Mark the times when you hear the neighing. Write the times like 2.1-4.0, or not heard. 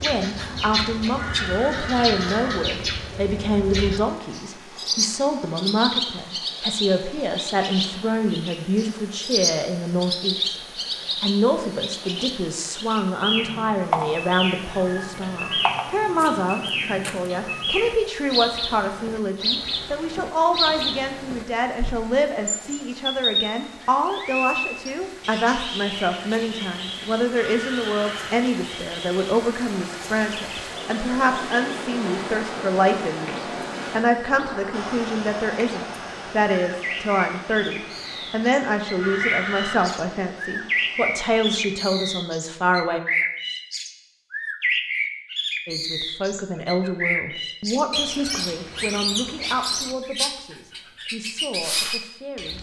1.1-2.6, 27.4-28.4, 39.0-40.0.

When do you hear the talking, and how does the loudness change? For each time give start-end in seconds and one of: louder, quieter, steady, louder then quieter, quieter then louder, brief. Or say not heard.
0.0-10.6 steady
11.2-43.0 steady
45.6-52.5 quieter.